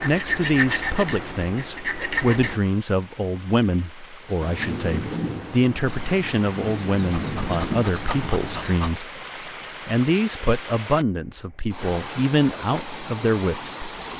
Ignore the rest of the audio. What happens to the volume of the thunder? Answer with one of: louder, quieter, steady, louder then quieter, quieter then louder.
quieter then louder.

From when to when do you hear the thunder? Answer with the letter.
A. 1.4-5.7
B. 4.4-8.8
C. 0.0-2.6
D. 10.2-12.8
B.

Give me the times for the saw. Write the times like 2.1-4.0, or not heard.
0.0-2.6.